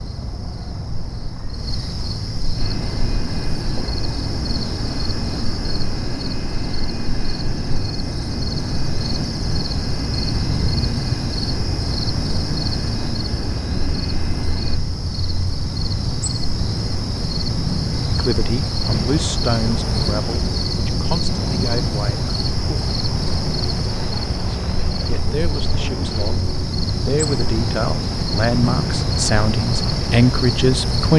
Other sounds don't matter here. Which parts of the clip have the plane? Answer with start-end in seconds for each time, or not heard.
2.5-14.8, 18.8-31.1.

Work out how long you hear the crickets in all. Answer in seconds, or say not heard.
31 s.